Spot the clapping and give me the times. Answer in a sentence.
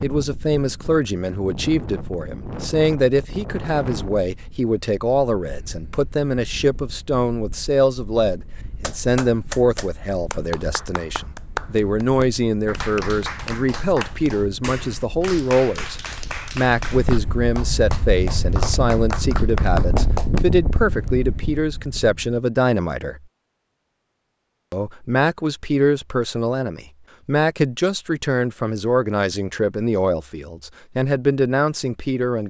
The clapping can be heard from 8.8 to 20.4 s.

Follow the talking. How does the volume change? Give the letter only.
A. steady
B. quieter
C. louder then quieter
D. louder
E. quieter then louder
A.